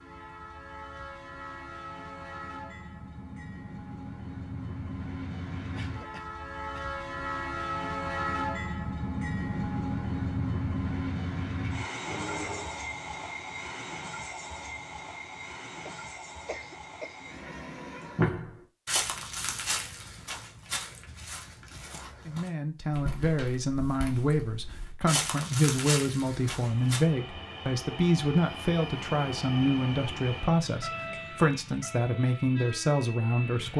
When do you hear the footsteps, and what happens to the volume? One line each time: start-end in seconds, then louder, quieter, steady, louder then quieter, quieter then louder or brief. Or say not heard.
18.1-27.0 quieter then louder.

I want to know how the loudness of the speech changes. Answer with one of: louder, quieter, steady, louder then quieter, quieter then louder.
steady.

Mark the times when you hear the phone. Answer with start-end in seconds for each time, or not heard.
12.1-12.8.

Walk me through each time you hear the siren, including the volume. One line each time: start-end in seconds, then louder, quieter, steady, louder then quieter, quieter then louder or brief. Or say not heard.
not heard.